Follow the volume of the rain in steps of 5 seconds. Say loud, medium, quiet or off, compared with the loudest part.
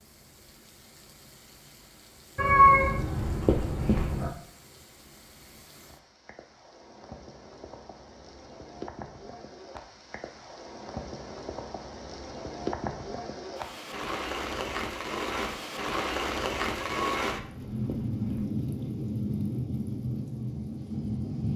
quiet, quiet, medium, loud, loud.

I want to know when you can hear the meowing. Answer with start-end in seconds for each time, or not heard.
2.4-4.3, 16.8-18.4.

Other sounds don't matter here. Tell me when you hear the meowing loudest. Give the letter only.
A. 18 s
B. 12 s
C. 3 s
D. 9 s
C.